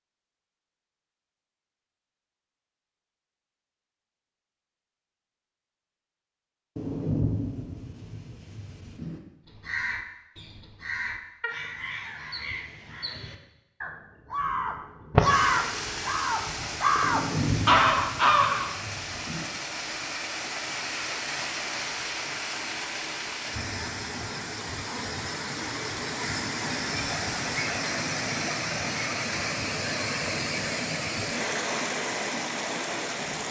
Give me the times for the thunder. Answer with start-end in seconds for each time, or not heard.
6.8-9.2, 17.0-19.5.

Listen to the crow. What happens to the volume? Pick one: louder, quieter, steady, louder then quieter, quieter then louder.
louder.